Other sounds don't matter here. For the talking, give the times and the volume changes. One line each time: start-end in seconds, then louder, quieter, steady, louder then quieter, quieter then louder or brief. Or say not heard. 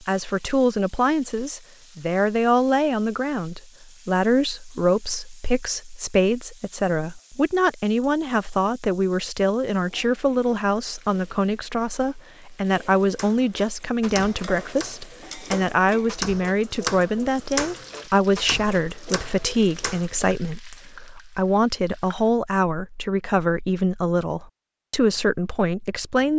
0.1-26.3 steady.